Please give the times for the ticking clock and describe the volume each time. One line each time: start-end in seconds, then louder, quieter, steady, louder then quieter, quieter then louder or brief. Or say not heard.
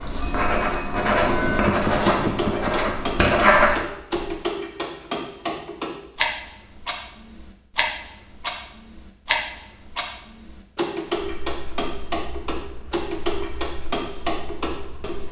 0.0-15.2 steady.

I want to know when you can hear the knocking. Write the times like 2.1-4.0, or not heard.
1.6-3.0.